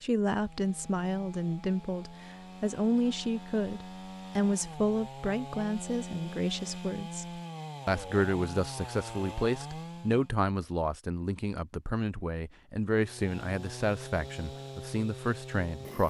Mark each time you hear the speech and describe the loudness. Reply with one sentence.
The speech can be heard from 0.0 to 16.0 s, at a steady volume.